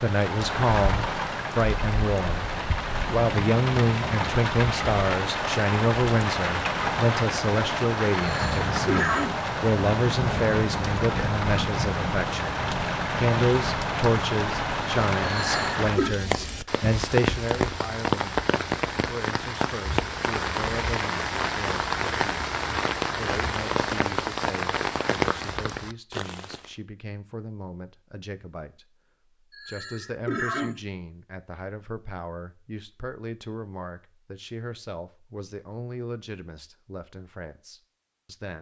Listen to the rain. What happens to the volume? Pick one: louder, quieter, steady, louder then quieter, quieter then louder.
steady.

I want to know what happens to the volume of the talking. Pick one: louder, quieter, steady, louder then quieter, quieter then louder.
quieter.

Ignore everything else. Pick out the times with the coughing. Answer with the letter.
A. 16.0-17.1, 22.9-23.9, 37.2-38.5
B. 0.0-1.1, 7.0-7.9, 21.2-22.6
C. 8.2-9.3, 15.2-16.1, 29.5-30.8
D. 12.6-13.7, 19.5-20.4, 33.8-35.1
C.